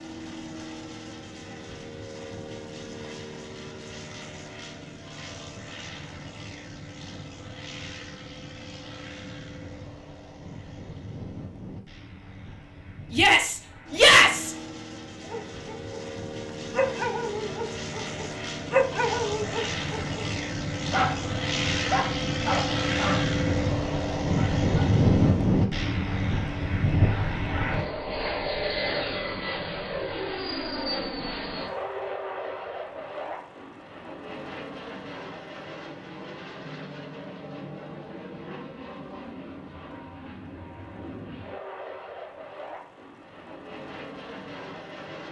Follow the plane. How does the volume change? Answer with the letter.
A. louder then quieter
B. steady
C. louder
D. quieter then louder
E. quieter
A.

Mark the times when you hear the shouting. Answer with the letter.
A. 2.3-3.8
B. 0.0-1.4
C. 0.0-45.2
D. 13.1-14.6
D.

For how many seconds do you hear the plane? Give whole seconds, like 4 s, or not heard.
45 s.